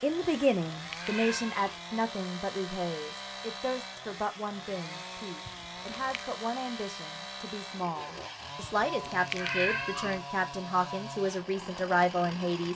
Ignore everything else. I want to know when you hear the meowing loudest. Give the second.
10 s.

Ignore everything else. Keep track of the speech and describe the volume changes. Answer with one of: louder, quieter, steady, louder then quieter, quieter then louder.
quieter then louder.